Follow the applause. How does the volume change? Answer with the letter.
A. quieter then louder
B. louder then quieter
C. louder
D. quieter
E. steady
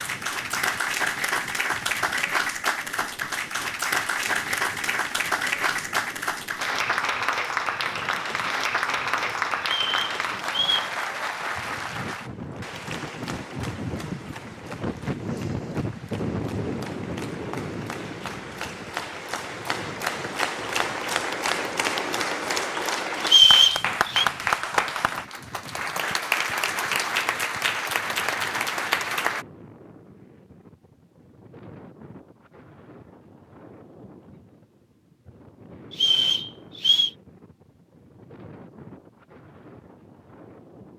A.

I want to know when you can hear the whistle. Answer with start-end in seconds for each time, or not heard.
9.6-10.9, 23.2-24.2, 35.9-37.1.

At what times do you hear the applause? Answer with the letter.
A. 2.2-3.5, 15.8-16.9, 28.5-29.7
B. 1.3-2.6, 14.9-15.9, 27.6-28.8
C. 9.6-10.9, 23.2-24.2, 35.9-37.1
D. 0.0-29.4
D.